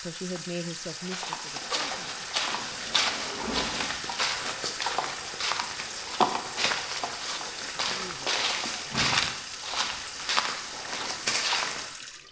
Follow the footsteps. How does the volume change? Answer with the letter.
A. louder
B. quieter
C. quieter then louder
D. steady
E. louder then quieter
D.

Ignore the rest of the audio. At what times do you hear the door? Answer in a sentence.
You can hear the door from 2.8 to 4.0 s and from 8.8 to 9.2 s.